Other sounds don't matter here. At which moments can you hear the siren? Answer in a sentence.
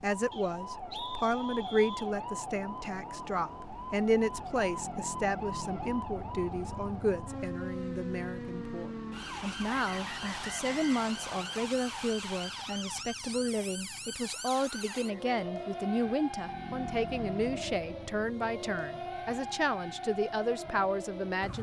You can hear the siren from 0.0 to 21.5 s.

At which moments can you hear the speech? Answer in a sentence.
The speech can be heard from 0.0 to 21.5 s.